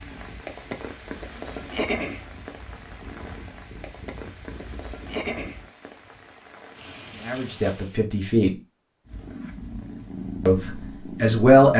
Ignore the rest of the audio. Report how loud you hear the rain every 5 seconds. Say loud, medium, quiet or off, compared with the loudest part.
loud, loud, off.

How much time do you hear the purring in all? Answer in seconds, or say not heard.
8 s.